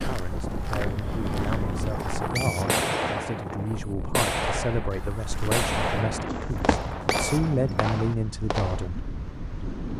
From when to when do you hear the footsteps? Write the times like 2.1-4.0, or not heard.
0.0-2.3, 4.9-6.9.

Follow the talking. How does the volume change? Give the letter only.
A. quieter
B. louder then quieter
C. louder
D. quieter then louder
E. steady
C.